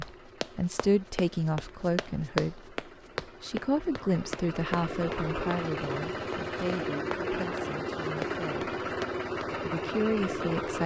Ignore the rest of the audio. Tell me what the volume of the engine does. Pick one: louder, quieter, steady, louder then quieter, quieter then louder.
louder.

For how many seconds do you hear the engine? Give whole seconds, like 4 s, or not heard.
11 s.